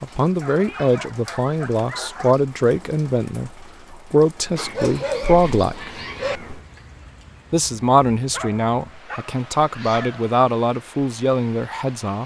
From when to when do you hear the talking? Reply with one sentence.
You can hear the talking from 0.0 to 5.9 s and from 7.5 to 12.2 s.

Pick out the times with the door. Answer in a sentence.
The door can't be heard in this clip.